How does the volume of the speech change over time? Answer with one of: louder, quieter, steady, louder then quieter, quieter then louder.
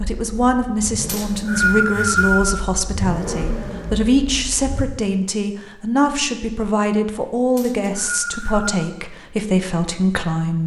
steady.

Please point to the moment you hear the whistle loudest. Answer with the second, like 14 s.
2 s.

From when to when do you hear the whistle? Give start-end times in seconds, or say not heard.
1.1-2.6, 7.5-8.8.